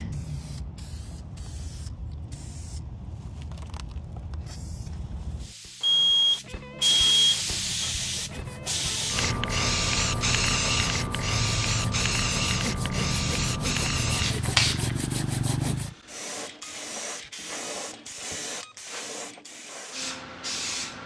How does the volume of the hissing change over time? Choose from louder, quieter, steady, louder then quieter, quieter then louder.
louder then quieter.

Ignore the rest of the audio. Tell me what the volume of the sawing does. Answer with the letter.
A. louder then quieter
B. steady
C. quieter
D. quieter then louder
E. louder
E.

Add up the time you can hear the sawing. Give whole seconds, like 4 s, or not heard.
9 s.